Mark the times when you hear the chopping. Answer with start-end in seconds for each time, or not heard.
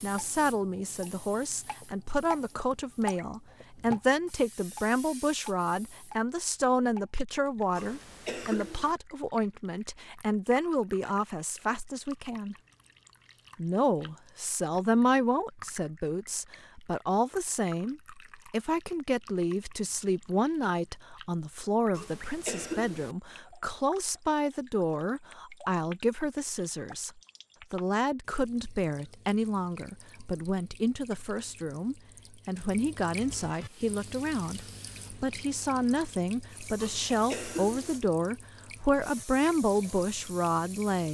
not heard.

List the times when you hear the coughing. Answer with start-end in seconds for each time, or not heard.
7.8-8.9, 21.9-23.1, 36.8-38.0.